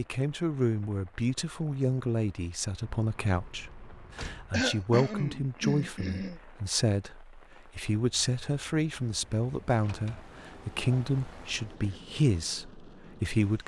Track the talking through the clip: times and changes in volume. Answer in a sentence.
You can hear the talking from 0.0 to 13.6 s, at a steady volume.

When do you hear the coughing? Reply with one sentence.
The coughing can be heard from 4.5 to 6.4 s.